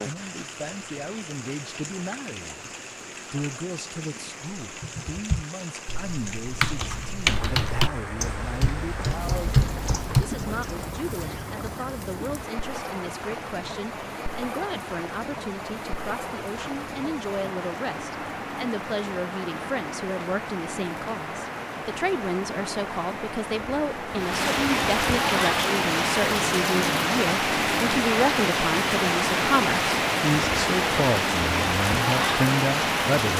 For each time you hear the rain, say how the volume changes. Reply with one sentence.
You can hear the rain from 0.0 to 33.3 s, getting louder.